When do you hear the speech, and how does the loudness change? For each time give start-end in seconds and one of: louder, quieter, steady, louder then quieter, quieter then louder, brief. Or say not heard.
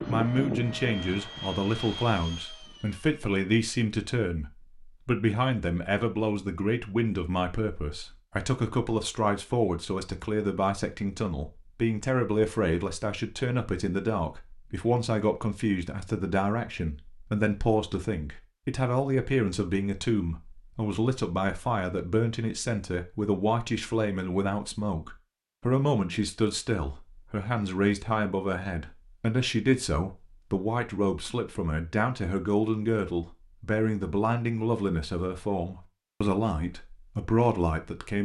0.1-38.2 steady.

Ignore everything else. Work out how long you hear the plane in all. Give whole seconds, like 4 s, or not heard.
3 s.